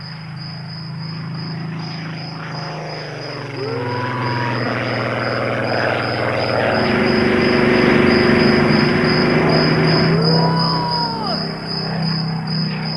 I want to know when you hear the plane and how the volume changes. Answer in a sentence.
You can hear the plane from 0.0 to 12.9 s, getting louder then quieter.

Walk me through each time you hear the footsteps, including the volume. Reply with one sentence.
The footsteps can't be heard in this clip.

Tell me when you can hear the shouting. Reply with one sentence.
The shouting can be heard from 3.5 to 4.6 s and from 10.1 to 11.4 s.